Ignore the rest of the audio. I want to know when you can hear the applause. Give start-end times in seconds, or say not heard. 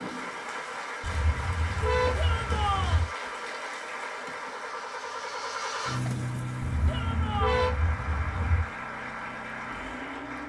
0.0-10.4.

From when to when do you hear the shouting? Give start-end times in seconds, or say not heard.
2.1-3.0, 6.8-7.8.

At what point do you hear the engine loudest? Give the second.
6 s.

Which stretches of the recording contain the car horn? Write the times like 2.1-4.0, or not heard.
1.0-3.0, 6.7-8.7.